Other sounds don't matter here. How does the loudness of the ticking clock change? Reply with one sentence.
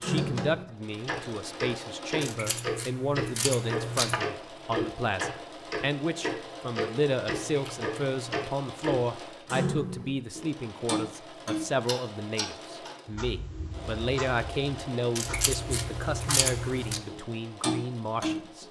The volume of the ticking clock goes down, then up.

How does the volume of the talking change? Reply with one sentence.
The volume of the talking stays about the same.